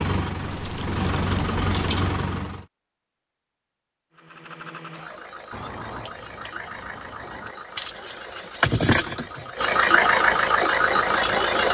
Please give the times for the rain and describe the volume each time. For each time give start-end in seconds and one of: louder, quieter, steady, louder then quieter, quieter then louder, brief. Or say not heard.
not heard.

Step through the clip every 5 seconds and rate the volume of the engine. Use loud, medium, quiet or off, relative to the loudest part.
medium, medium, loud.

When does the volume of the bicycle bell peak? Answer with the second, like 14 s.
7 s.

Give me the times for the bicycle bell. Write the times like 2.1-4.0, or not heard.
5.5-7.5.